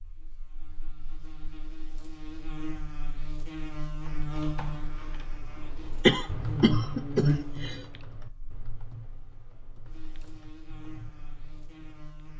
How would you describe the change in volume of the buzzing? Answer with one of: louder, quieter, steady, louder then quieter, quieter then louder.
louder then quieter.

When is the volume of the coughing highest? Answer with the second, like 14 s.
6 s.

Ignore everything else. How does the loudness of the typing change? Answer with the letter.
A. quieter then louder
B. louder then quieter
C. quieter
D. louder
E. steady
B.